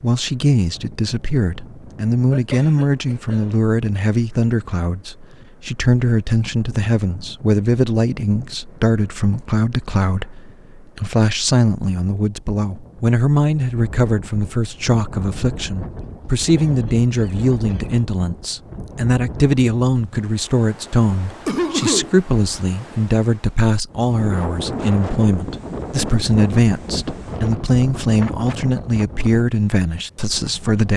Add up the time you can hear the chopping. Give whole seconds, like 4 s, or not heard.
not heard.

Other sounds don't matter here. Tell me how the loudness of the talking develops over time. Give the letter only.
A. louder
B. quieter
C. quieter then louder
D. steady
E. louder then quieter
D.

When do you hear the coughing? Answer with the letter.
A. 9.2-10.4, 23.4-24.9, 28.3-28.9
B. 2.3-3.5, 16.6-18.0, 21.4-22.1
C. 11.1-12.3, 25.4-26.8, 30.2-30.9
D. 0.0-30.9
B.